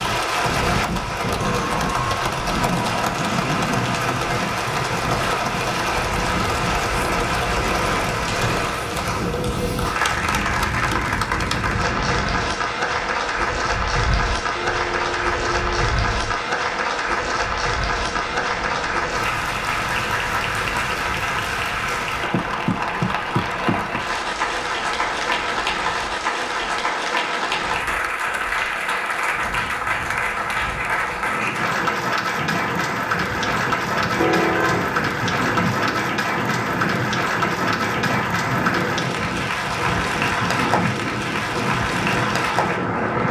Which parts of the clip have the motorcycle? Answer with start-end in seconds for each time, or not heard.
not heard.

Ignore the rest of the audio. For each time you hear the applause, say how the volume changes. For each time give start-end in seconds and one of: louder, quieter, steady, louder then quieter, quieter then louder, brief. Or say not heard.
0.0-43.2 steady.